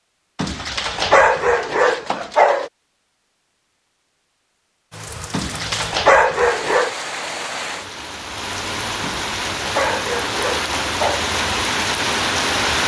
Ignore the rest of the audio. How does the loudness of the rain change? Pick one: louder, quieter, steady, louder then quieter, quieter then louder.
louder.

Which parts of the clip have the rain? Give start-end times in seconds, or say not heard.
4.9-12.8.